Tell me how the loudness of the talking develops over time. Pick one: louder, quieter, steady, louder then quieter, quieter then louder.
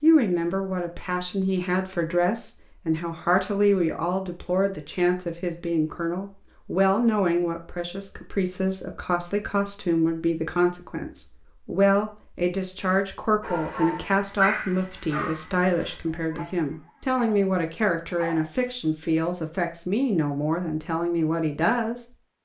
steady.